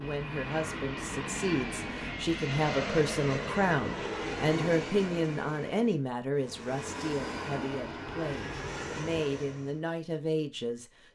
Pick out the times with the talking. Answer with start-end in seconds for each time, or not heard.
0.0-10.8.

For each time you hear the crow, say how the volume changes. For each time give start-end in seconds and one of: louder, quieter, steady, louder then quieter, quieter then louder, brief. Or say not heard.
not heard.